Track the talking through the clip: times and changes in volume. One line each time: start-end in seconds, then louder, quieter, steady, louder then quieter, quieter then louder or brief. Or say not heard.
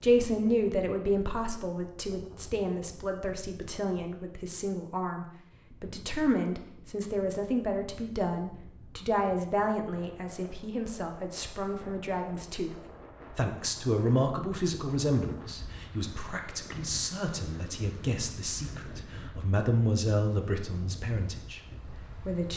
0.0-22.5 steady.